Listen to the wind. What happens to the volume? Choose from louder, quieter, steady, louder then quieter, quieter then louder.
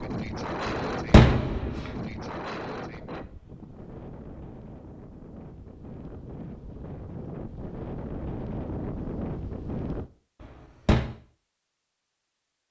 quieter then louder.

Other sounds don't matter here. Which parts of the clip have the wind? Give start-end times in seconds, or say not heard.
0.0-10.1.